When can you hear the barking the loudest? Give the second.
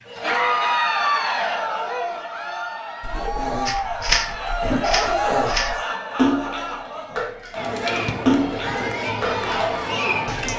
5 s.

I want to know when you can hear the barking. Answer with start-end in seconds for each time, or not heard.
3.0-5.8.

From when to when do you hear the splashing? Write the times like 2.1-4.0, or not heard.
3.6-10.5.